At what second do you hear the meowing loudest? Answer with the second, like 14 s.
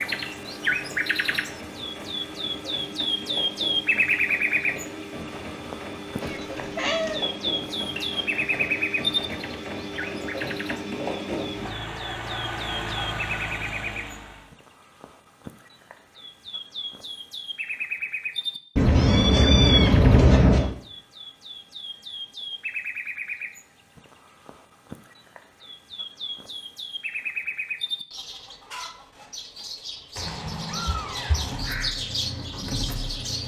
20 s.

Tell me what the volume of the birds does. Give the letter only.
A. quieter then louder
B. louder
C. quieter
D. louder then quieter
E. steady
C.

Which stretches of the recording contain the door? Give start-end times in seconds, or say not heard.
not heard.